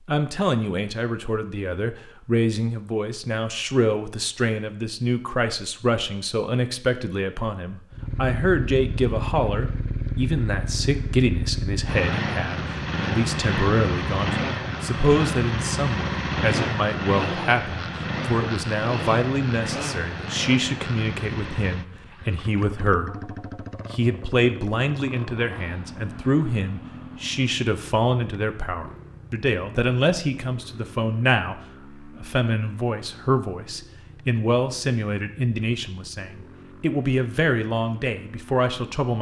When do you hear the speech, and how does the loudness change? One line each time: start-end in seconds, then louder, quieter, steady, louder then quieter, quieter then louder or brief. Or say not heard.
0.1-23.3 steady
23.9-39.1 steady.